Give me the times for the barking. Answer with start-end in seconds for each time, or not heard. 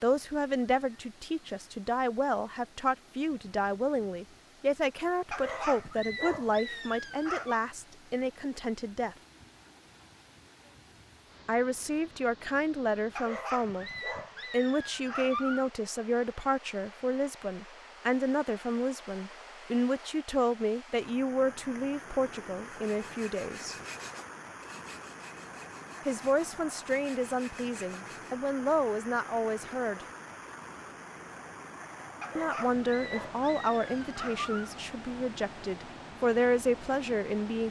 5.3-7.7, 13.2-15.7, 32.2-34.7.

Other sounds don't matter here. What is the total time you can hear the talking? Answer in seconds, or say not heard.
30 s.